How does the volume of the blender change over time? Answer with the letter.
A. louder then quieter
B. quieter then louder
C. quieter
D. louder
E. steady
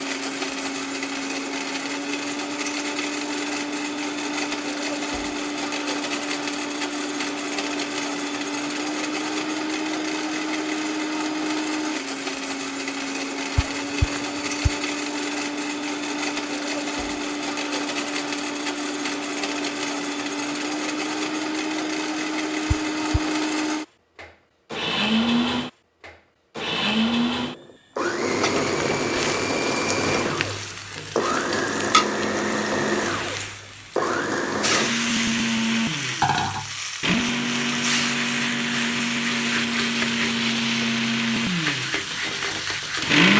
E.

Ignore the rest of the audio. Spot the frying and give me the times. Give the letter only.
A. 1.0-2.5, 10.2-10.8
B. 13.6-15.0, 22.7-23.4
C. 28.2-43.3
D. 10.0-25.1
C.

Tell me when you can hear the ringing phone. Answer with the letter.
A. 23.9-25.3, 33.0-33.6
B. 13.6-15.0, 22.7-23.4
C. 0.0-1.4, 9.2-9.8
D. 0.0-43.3
B.